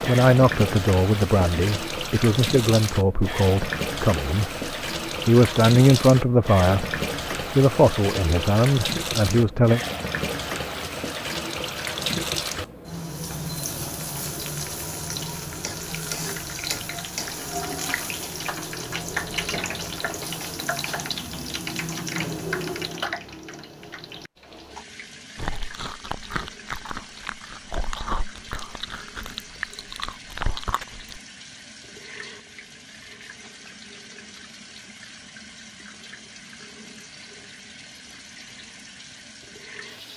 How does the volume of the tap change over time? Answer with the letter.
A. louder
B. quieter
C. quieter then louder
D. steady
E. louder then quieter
B.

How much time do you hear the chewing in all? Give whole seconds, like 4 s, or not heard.
6 s.